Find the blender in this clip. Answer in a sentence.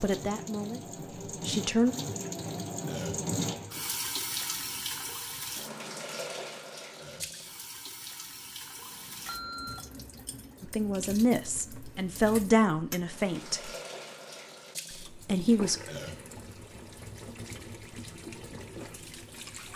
The blender can't be heard in this clip.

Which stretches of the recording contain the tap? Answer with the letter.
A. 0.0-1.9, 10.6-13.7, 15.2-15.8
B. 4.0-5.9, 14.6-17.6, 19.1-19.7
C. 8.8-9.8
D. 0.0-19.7
D.